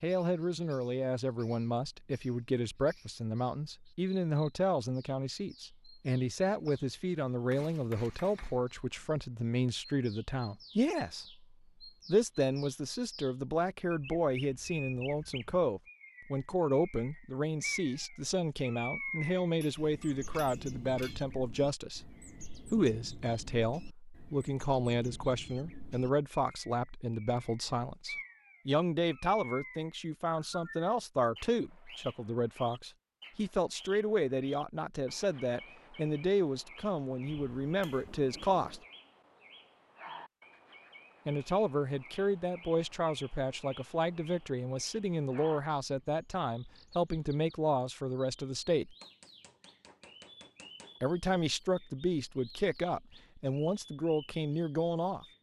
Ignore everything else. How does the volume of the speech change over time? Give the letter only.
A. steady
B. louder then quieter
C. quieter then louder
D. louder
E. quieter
A.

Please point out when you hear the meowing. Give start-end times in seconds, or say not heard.
not heard.